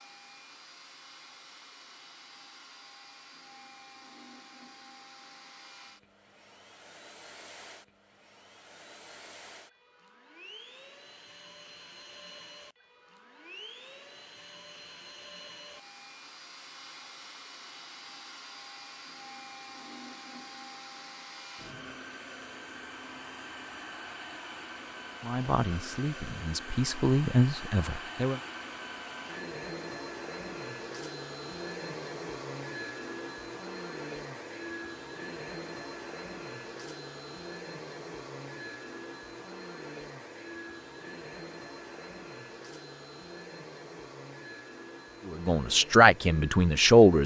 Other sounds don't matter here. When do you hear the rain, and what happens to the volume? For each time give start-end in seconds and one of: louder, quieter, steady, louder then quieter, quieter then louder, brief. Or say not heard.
not heard.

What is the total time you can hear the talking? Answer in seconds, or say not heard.
5 s.